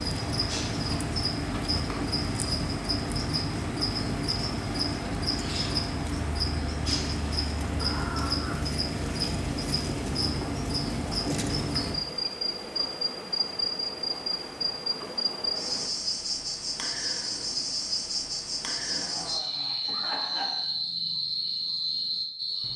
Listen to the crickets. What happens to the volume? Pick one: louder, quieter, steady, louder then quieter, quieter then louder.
steady.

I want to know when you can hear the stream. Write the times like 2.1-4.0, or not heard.
0.0-15.9.